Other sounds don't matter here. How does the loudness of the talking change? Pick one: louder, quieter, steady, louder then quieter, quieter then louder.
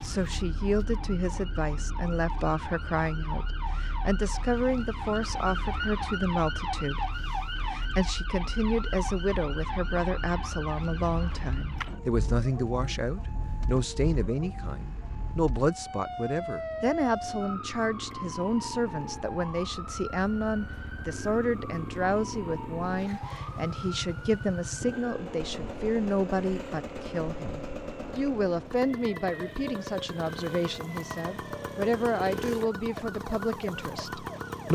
steady.